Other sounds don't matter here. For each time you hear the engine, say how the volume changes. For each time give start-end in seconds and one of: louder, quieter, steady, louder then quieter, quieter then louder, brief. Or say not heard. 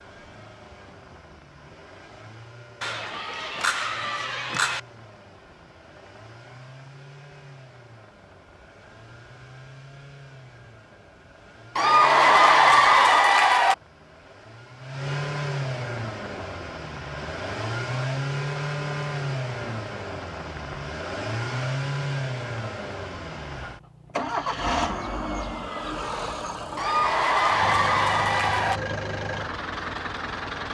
0.0-30.7 louder.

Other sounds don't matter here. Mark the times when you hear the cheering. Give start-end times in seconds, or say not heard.
2.8-4.8, 11.8-13.8, 26.8-28.8.